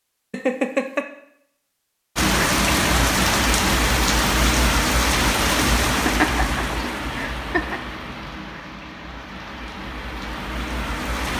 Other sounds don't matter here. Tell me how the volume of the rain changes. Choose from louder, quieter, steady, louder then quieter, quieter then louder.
quieter.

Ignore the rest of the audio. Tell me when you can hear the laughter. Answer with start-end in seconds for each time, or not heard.
0.3-1.1, 6.0-7.8.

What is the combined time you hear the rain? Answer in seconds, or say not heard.
9 s.